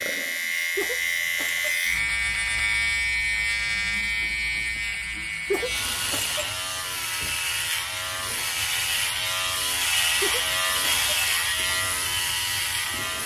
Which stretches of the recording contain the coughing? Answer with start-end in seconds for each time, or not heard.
0.8-1.8, 5.5-6.5, 10.2-11.1.